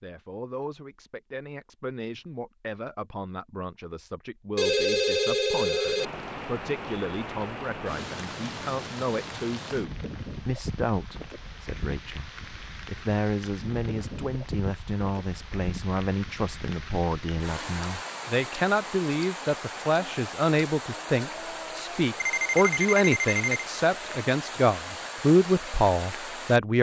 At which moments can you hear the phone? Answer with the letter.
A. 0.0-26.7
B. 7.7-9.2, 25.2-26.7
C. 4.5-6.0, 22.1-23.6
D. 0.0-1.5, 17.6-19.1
C.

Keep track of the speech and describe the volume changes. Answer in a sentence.
The loudness of the speech goes up.